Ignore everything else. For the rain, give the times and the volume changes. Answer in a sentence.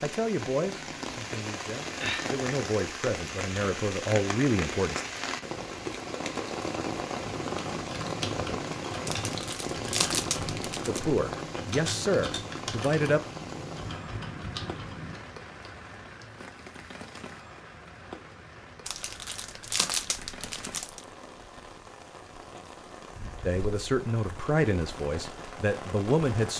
The rain can be heard from 0.0 to 26.5 s, getting quieter.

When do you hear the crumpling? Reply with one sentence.
You can hear the crumpling from 9.1 to 11.1 s and from 18.9 to 21.1 s.